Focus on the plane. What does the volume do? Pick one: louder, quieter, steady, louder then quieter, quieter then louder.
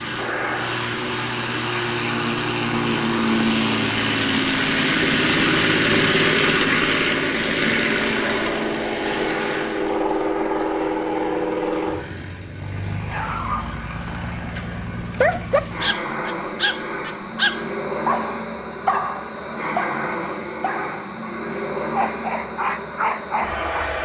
quieter.